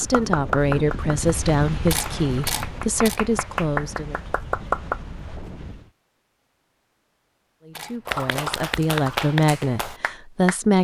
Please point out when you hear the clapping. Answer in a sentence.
The clapping can be heard from 0.0 to 5.0 s and from 8.1 to 10.6 s.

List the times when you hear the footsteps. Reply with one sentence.
You can't hear the footsteps here.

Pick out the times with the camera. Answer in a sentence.
The camera can be heard from 1.9 to 3.2 s and from 7.7 to 8.5 s.